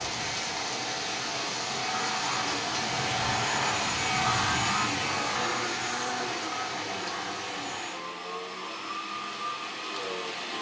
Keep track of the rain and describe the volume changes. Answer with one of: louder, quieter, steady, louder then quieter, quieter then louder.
quieter.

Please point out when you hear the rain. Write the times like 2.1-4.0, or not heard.
0.0-10.5.